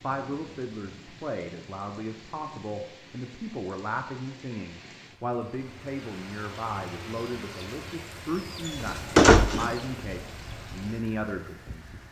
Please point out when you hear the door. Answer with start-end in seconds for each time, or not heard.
8.7-9.8.